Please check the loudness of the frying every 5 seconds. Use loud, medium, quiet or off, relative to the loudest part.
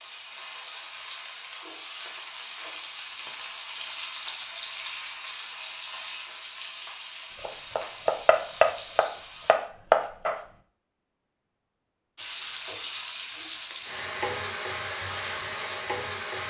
medium, medium, loud, loud.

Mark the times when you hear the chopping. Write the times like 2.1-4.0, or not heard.
7.4-10.4.